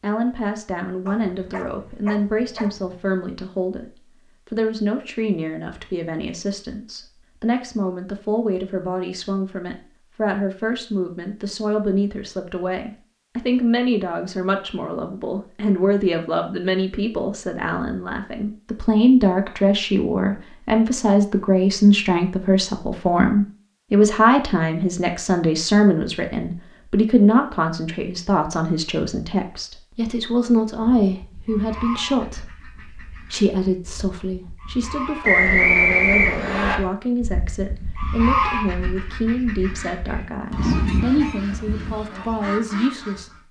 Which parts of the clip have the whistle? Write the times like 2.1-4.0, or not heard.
35.2-36.8.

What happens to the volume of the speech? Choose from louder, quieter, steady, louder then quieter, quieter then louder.
louder then quieter.